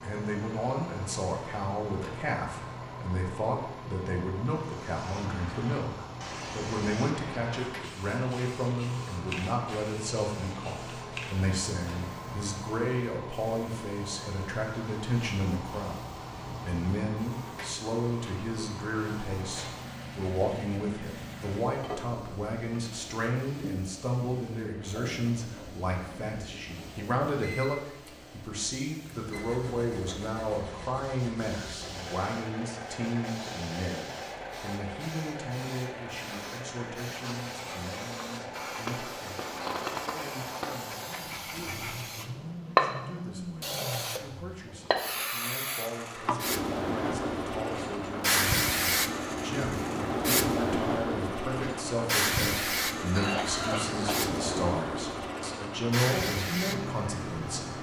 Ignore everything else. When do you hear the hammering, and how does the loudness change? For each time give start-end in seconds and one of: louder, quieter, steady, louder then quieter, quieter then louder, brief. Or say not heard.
not heard.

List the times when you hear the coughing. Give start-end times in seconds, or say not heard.
53.1-54.3.